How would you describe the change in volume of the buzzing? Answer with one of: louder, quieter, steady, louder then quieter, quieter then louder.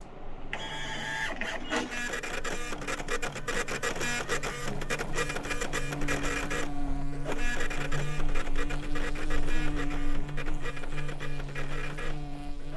louder.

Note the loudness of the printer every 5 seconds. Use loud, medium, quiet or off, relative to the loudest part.
loud, loud, medium.